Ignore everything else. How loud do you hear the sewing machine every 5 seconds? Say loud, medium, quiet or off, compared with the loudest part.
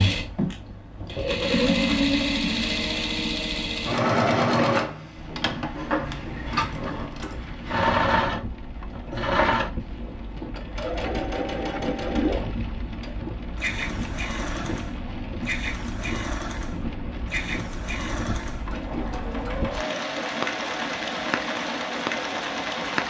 loud, loud, medium, medium, medium.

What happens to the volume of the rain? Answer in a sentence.
The loudness of the rain goes up.